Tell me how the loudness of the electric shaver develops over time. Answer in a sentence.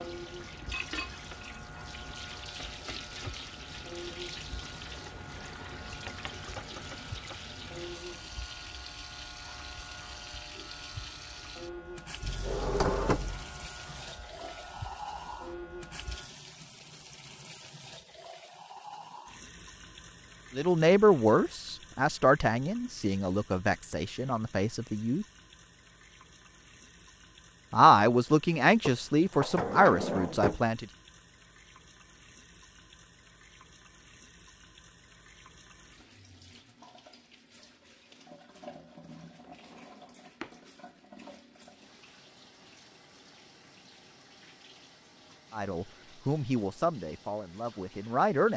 The loudness of the electric shaver stays about the same.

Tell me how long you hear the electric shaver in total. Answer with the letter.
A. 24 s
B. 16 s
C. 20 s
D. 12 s
B.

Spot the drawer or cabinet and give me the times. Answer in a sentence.
You can hear the drawer or cabinet from 12.2 to 13.4 s, from 28.8 to 30.6 s and from 39.4 to 40.5 s.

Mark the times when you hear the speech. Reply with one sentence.
You can hear the speech from 20.6 to 25.2 s, from 27.7 to 30.9 s and from 45.5 to 48.5 s.